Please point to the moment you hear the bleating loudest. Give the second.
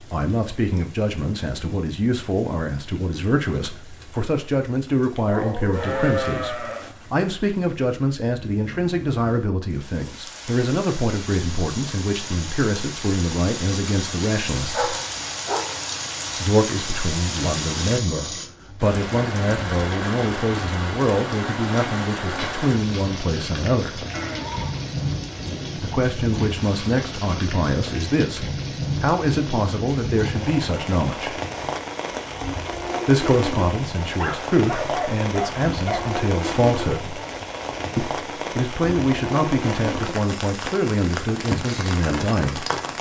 6 s.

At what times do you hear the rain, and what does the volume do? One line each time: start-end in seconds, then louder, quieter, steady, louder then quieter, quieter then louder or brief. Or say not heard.
0.0-42.9 louder.